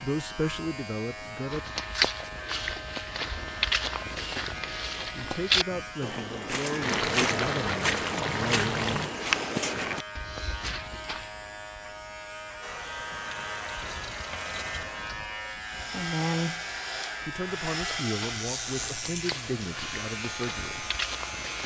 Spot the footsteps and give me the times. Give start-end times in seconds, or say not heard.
1.5-11.3, 18.1-21.6.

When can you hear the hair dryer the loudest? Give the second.
18 s.